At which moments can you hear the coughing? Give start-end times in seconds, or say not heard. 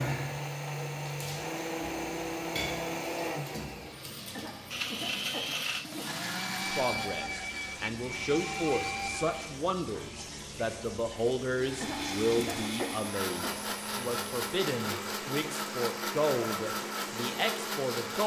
4.3-6.2, 11.8-13.6.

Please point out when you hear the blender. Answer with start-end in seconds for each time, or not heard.
0.0-9.6, 11.5-18.2.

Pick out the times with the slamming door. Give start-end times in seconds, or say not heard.
not heard.